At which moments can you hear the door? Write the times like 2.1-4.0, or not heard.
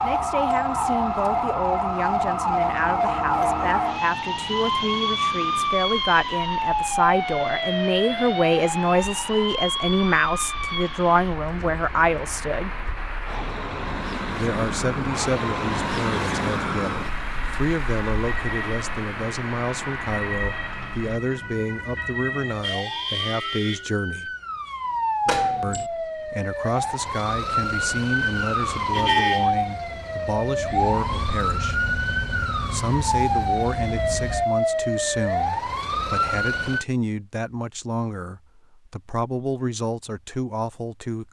25.2-25.9.